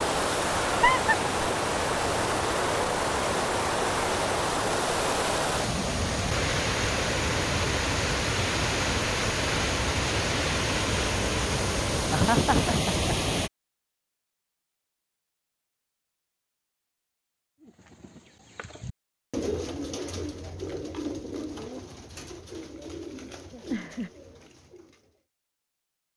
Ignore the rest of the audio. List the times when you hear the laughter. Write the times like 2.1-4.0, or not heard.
0.7-1.1, 12.1-13.1, 23.5-24.1.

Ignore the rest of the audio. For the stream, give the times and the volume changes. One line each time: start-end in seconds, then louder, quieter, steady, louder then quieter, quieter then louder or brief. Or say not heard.
0.0-13.5 steady.